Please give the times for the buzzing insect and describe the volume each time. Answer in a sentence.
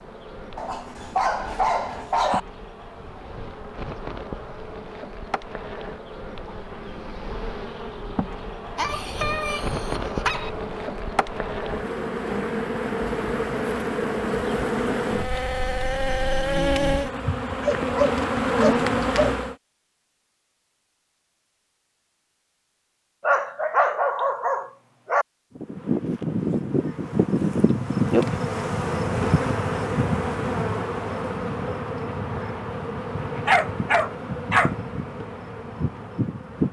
The buzzing insect can be heard from 0.0 to 19.6 s, getting louder; and from 25.6 to 36.6 s, getting quieter.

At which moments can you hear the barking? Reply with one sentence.
The barking can be heard from 0.6 to 2.4 s, from 8.8 to 10.5 s, from 17.6 to 19.4 s, from 23.2 to 25.2 s and from 33.5 to 34.7 s.